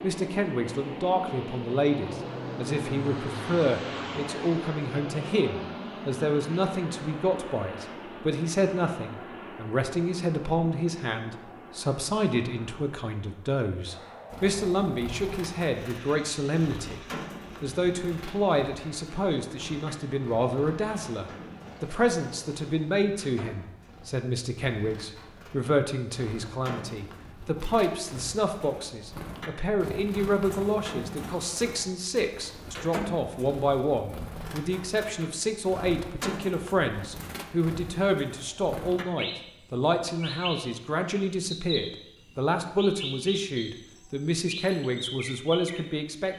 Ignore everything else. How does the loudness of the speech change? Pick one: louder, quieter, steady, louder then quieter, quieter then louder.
steady.